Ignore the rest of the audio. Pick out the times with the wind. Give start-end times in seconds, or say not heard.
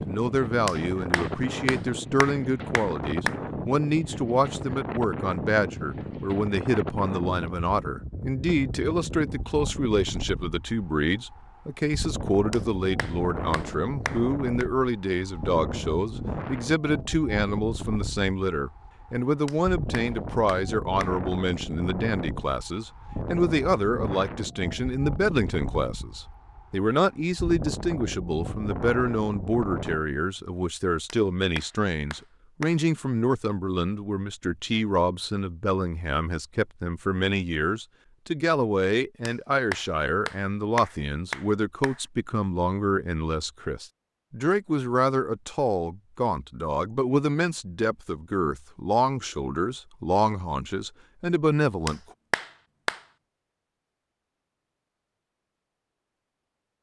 0.0-30.1.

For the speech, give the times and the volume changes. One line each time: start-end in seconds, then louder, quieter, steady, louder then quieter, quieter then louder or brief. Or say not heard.
0.1-52.0 steady.